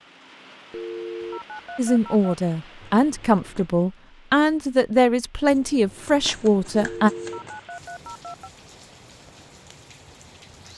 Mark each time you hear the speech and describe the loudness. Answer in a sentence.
The speech can be heard from 1.8 to 7.1 s, at a steady volume.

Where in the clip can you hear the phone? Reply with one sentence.
The phone can be heard from 0.7 to 2.4 s and from 6.7 to 8.5 s.